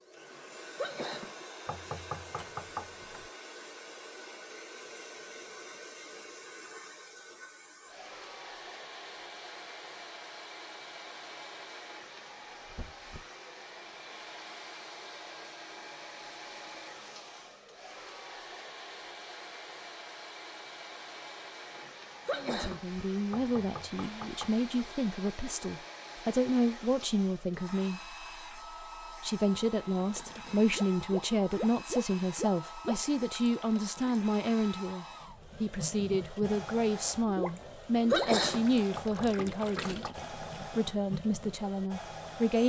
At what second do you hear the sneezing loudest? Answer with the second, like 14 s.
38 s.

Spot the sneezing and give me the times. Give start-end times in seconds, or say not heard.
0.3-1.4, 21.8-22.8, 37.6-39.4.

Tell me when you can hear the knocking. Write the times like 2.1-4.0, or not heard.
1.6-3.3, 23.3-24.9, 39.0-40.3.